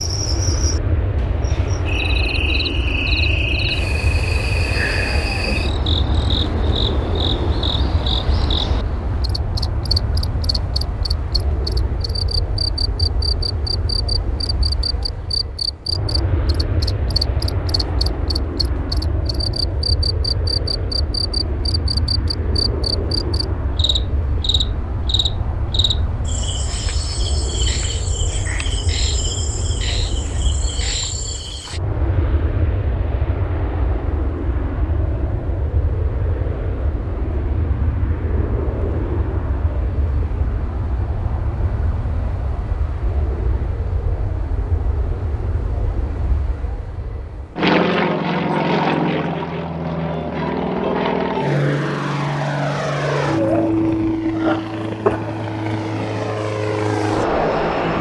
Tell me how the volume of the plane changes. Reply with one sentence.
The volume of the plane goes up.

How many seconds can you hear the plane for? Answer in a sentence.
You can hear the plane for 58 seconds altogether.